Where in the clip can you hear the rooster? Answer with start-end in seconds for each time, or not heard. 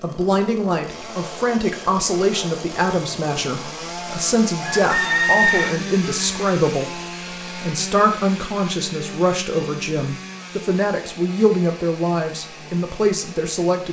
4.6-5.8.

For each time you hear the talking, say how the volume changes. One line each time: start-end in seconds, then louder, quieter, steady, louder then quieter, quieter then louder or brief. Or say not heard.
0.0-13.8 steady.